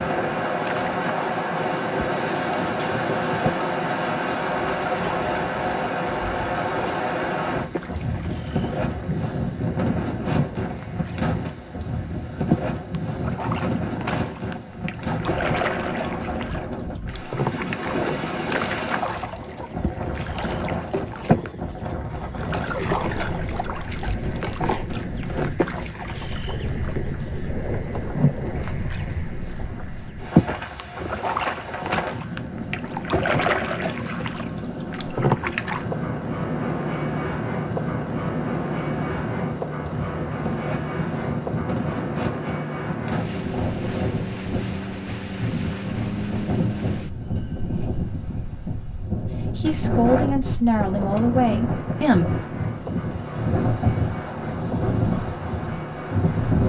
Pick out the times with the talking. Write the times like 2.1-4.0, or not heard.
49.5-52.4.